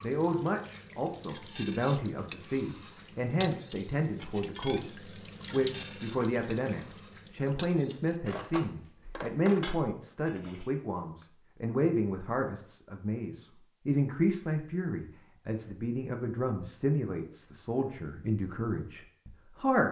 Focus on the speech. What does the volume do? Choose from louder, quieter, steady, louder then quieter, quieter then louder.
steady.